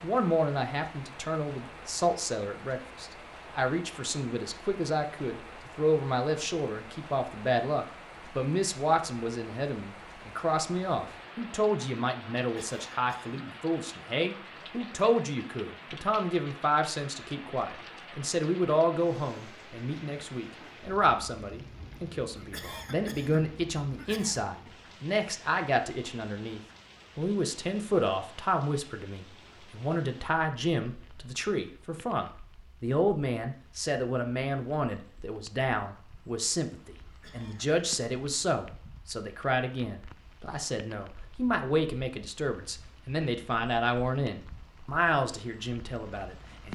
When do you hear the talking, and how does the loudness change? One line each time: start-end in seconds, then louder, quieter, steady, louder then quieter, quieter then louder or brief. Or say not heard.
0.0-46.7 steady.